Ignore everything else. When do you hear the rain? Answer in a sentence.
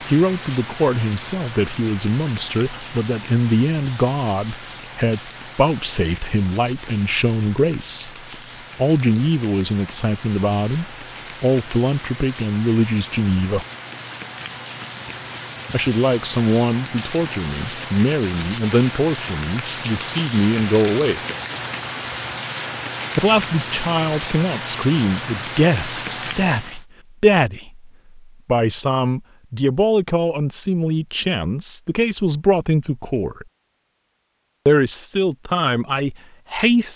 You can hear the rain from 0.0 to 26.9 s.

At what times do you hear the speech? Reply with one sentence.
You can hear the speech from 0.1 to 8.1 s, from 8.8 to 13.7 s, from 15.7 to 21.2 s, from 23.1 to 33.5 s and from 34.6 to 36.9 s.